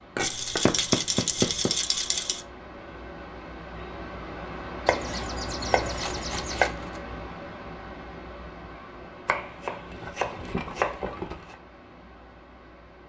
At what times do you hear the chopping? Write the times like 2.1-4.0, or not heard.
0.1-1.8, 4.8-6.7, 9.2-11.6.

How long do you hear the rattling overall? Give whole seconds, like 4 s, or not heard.
5 s.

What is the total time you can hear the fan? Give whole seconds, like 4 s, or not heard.
13 s.